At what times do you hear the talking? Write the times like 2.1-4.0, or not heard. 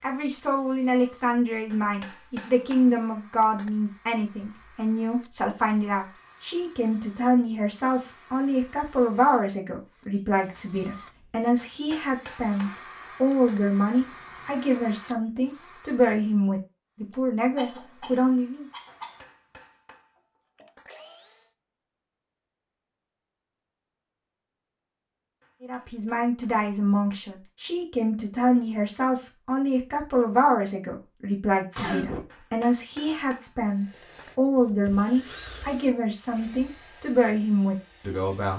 0.0-18.6, 25.6-38.5.